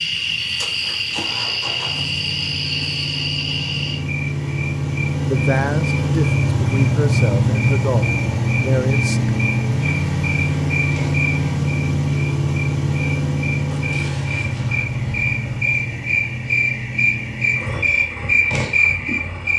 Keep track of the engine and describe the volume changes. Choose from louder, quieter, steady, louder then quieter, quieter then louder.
louder then quieter.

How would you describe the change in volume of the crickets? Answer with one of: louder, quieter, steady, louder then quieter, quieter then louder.
quieter then louder.